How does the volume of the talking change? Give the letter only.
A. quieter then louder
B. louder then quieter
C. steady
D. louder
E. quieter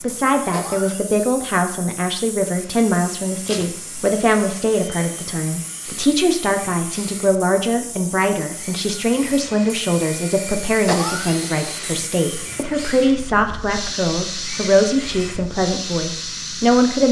C.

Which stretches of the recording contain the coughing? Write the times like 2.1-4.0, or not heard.
0.5-1.4, 10.8-11.5.